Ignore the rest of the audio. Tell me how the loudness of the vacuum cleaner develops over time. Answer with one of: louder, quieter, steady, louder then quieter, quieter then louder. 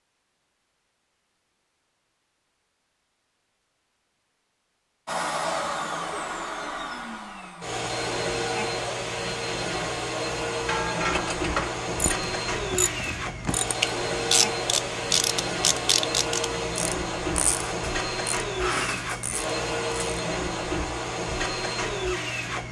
steady.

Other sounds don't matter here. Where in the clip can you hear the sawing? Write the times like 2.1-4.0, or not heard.
not heard.